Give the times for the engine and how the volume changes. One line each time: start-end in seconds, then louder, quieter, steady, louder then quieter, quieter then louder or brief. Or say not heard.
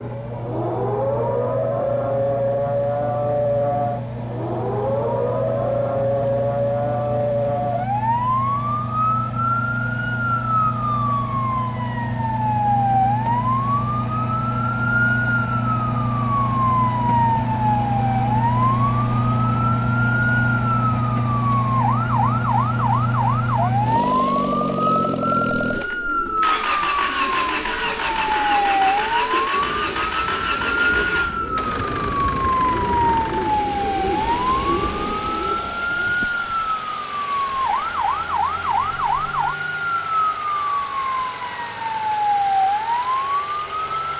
0.0-44.1 louder then quieter.